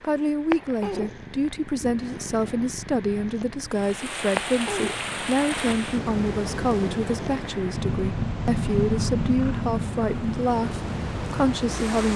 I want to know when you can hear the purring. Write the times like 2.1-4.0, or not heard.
0.0-12.1.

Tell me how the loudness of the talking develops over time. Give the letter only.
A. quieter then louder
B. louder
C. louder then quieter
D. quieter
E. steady
E.